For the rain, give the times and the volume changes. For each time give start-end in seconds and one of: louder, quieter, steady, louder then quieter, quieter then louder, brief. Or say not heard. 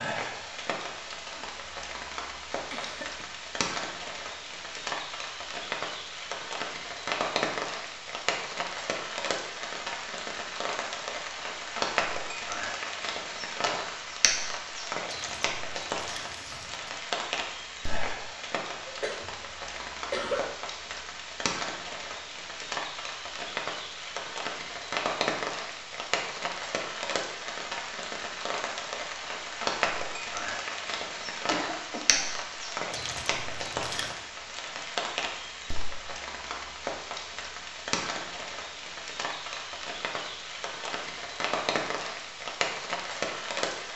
0.0-43.9 steady.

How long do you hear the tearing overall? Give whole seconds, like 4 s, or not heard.
3 s.